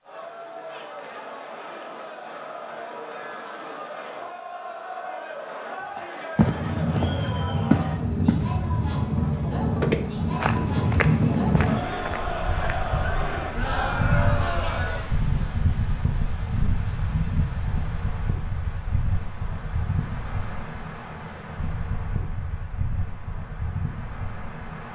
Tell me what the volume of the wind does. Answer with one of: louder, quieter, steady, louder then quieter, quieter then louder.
quieter.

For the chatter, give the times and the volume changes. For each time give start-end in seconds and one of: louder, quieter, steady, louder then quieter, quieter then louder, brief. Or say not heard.
0.0-15.2 louder.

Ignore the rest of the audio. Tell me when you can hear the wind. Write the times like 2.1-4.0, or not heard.
6.5-24.9.